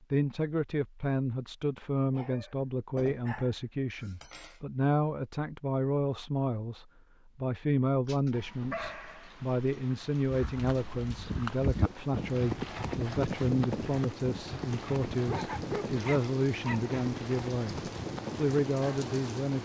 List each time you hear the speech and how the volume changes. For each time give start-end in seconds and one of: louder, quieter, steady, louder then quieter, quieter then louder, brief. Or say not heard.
0.1-19.6 steady.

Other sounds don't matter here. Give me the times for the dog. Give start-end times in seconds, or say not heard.
2.1-4.6, 8.1-9.3, 15.2-16.9.